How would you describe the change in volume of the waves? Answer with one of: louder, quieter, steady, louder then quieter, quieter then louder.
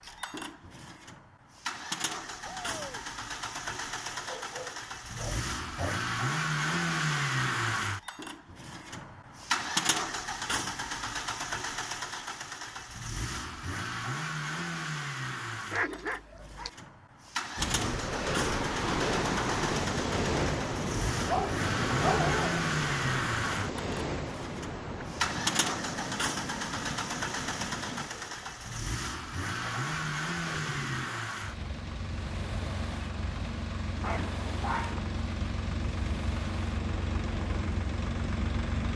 quieter.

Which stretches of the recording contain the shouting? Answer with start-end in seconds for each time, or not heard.
2.5-3.0.